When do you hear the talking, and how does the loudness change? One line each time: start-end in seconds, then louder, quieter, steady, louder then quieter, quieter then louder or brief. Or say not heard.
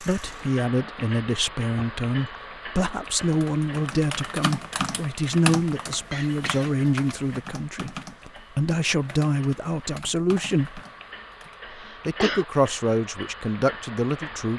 0.0-10.8 steady
12.1-14.5 brief.